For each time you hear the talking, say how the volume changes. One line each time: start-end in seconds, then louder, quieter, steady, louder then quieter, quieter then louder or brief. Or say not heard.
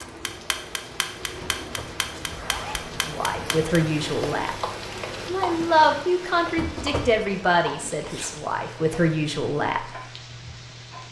3.0-4.5 brief
5.2-9.8 quieter then louder.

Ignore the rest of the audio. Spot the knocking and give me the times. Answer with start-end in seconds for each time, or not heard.
1.4-2.0, 6.5-7.2.